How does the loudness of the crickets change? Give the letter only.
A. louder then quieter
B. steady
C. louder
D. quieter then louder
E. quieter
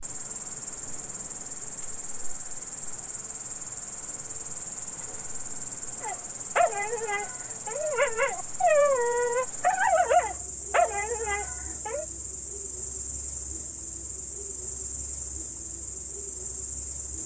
B.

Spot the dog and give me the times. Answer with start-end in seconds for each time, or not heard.
6.0-12.1.